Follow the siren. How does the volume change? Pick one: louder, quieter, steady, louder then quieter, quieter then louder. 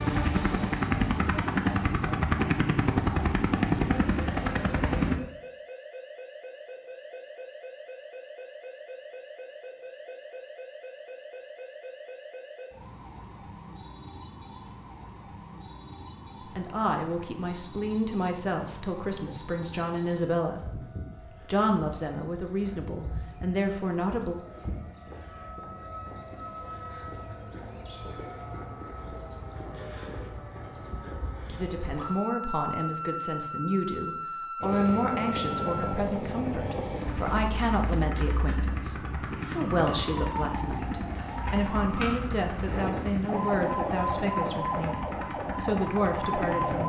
louder.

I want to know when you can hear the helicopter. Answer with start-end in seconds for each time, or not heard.
0.0-5.2, 34.6-46.8.